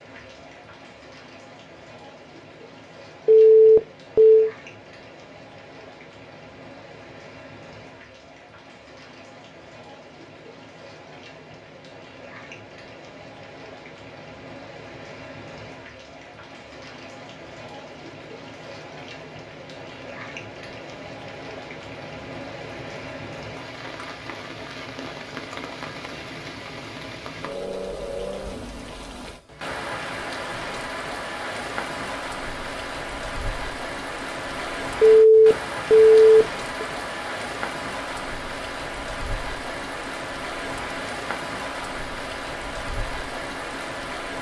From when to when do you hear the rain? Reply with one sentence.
The rain can be heard from 0.0 to 44.3 s.